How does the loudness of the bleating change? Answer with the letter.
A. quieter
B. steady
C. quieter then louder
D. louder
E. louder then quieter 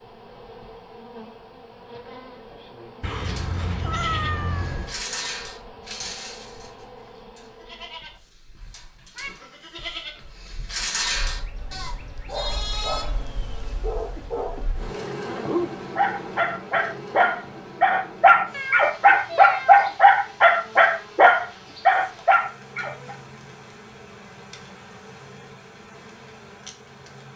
C.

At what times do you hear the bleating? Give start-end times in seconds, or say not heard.
3.2-13.1.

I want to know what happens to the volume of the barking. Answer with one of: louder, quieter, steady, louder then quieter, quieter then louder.
louder.